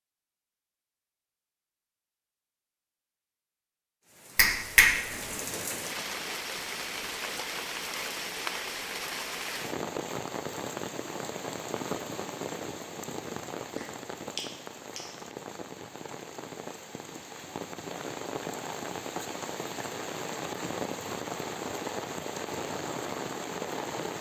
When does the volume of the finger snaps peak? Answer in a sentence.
The volume of the finger snaps peaks at 5 seconds.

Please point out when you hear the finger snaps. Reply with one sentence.
You can hear the finger snaps from 4.3 to 5.3 s and from 13.8 to 15.2 s.